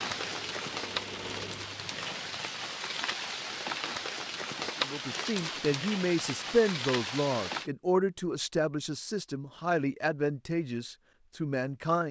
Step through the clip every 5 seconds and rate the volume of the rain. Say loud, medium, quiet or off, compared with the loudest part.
loud, loud, off.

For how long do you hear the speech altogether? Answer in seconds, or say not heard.
7 s.